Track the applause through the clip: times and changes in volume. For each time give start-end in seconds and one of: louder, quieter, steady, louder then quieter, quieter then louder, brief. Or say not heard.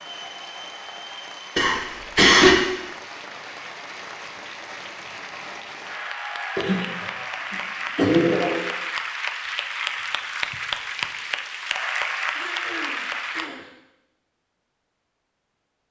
0.0-13.5 louder.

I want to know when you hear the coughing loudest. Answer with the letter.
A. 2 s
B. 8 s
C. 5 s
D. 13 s
A.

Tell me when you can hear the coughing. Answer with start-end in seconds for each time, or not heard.
1.6-2.6, 6.5-8.6, 12.3-13.7.